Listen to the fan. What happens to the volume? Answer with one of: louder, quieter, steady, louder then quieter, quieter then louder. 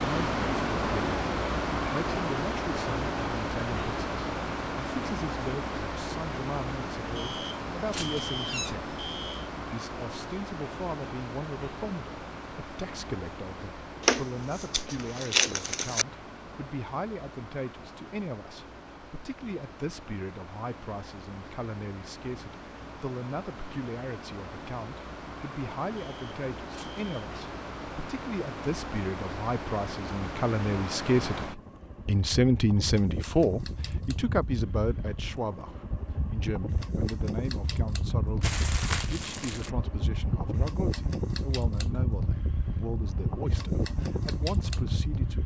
quieter then louder.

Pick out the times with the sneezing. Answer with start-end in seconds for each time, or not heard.
not heard.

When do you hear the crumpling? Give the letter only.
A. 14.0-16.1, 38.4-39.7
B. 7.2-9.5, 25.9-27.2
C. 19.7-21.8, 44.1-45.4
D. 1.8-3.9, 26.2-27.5
A.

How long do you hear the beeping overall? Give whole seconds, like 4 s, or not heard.
4 s.